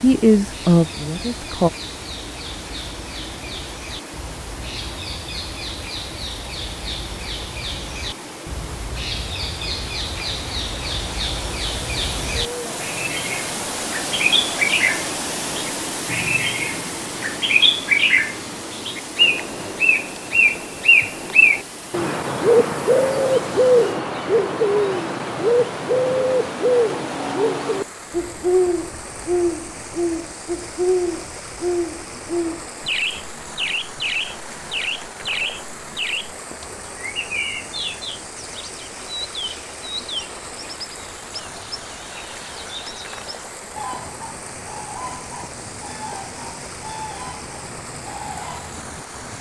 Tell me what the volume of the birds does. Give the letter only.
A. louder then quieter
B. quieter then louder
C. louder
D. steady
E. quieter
A.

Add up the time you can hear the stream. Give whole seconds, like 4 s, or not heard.
49 s.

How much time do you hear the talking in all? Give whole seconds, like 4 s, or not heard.
2 s.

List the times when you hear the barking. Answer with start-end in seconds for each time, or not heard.
not heard.